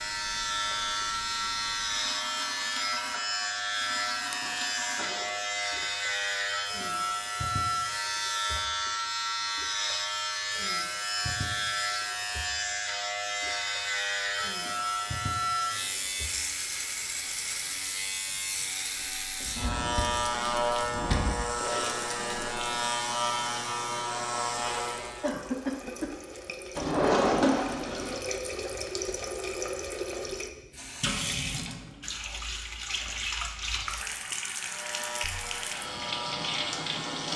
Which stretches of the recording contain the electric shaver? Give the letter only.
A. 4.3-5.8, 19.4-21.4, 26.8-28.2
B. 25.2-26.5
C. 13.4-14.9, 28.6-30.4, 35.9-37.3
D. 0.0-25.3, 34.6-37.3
D.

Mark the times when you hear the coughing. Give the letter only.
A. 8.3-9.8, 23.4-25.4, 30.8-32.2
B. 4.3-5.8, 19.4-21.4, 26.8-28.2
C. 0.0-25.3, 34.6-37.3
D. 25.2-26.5
D.